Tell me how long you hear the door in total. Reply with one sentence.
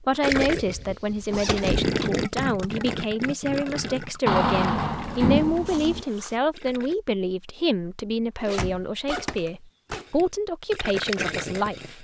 You can hear the door for 4 seconds altogether.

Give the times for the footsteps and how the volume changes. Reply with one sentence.
You can't hear the footsteps here.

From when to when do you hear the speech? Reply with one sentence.
The speech can be heard from 0.0 to 11.9 s.